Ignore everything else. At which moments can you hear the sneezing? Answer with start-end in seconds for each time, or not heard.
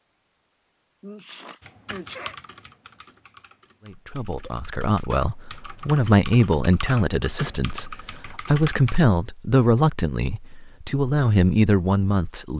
1.0-2.4.